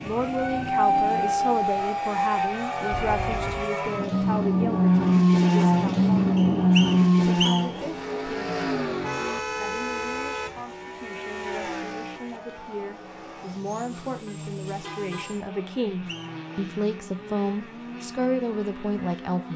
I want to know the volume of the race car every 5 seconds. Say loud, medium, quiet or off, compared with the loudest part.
medium, loud, quiet, quiet.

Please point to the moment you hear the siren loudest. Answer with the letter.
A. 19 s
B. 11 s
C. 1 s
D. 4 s
C.